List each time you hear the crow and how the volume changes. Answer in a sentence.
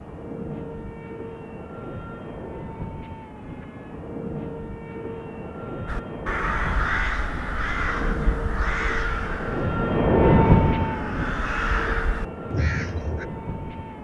You can hear the crow from 5.8 to 13.2 s, getting quieter then louder.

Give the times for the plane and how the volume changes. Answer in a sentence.
The plane can be heard from 0.0 to 13.9 s, getting louder then quieter.